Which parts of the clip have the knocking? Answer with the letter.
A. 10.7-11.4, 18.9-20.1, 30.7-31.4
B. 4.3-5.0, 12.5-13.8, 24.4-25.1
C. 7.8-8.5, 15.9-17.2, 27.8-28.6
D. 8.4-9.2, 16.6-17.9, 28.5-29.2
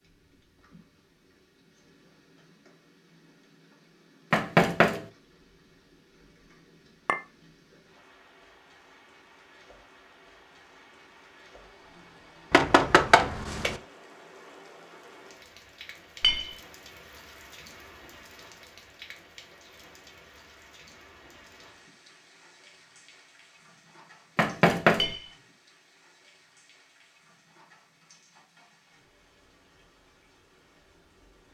B.